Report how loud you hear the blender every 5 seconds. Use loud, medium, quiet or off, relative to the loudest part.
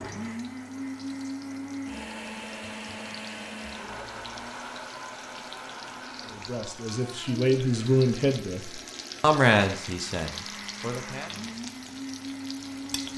loud, medium, loud.